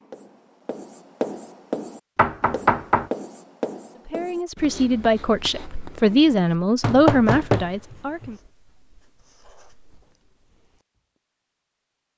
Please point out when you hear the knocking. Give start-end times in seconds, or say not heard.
2.1-3.1, 6.8-8.3.